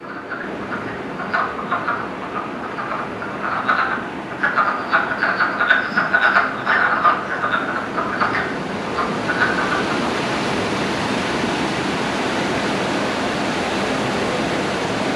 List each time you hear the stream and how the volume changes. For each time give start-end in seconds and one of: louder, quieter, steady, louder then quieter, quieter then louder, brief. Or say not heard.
0.0-15.1 louder.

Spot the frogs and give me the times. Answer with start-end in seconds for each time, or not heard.
0.0-9.9.